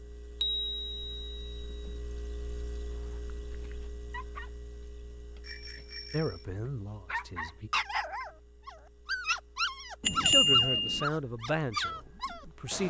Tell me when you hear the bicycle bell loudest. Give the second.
10 s.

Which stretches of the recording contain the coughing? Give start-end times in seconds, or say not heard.
not heard.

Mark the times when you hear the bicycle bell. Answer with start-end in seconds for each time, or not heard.
0.4-1.9, 5.4-6.5, 10.0-11.1.